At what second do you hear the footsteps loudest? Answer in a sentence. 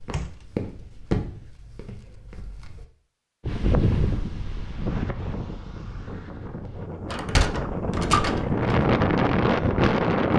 The loudest moment of the footsteps is at 1 second.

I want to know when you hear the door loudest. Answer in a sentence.
The volume of the door peaks at 8 seconds.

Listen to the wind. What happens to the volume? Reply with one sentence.
The volume of the wind goes down, then up.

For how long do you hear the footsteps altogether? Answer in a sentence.
You can hear the footsteps for 3 seconds altogether.